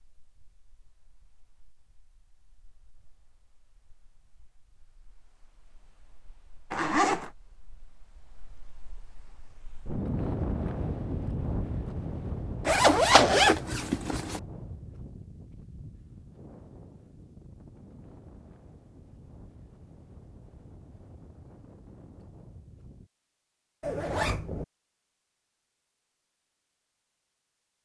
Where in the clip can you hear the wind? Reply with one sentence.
The wind can be heard from 0.2 to 23.1 s.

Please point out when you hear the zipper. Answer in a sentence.
The zipper can be heard from 6.7 to 7.3 s, from 12.7 to 14.4 s and from 23.8 to 24.6 s.